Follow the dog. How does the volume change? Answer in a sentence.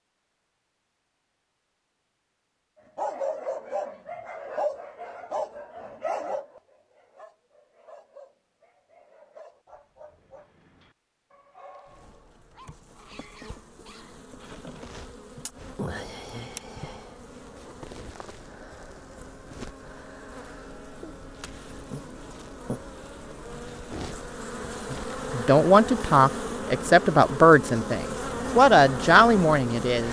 The volume of the dog goes down.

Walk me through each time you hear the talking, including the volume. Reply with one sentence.
You can hear the talking from 24.9 to 30.0 s, at a steady volume.